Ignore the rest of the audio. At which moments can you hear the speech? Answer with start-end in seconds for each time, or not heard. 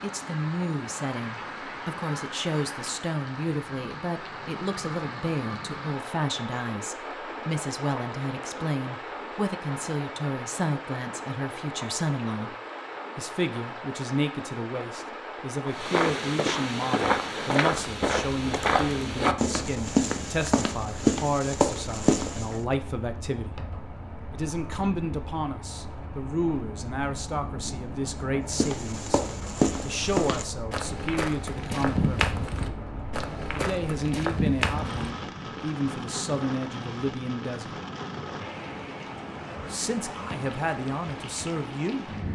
0.0-12.6, 13.2-23.6, 24.3-32.2, 33.5-37.7, 39.6-42.1.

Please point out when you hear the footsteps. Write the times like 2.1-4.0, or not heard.
15.7-22.6, 28.5-35.1.